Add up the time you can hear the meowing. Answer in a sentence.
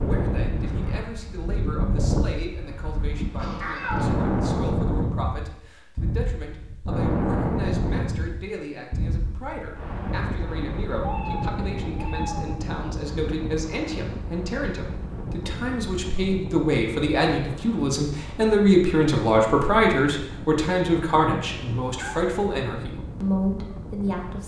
The meowing can be heard for 3 seconds in total.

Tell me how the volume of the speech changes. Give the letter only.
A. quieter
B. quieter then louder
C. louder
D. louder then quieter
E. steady
C.